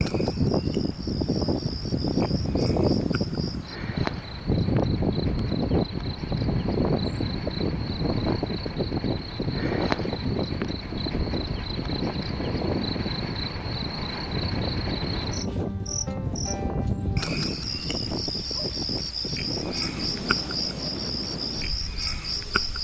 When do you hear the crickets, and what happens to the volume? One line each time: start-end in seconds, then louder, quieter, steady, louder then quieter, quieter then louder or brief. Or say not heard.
0.0-22.8 louder.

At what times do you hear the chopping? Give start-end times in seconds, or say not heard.
not heard.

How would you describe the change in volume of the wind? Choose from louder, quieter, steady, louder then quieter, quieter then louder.
quieter.